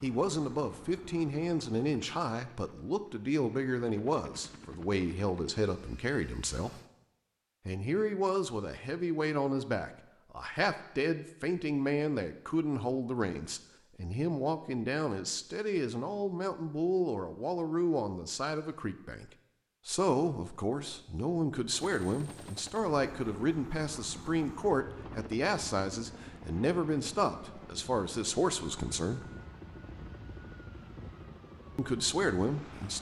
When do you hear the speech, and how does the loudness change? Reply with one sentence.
You can hear the speech from 0.0 to 6.8 s, at a steady volume; from 7.7 to 29.2 s, at a steady volume; and briefly from 31.8 to 32.9 s.